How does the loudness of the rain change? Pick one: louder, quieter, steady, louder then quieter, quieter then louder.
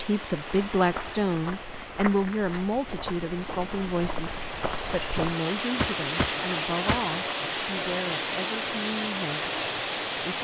louder.